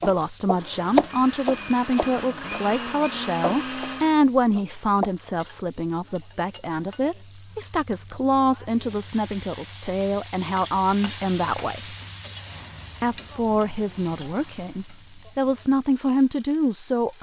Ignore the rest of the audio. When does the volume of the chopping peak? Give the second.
1 s.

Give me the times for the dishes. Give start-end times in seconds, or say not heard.
not heard.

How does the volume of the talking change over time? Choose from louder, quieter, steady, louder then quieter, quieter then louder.
steady.